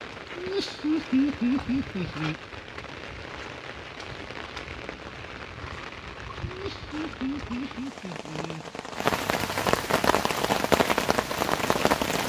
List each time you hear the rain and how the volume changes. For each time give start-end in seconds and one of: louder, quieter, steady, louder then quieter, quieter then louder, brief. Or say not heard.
0.0-12.2 louder.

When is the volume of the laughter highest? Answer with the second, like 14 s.
1 s.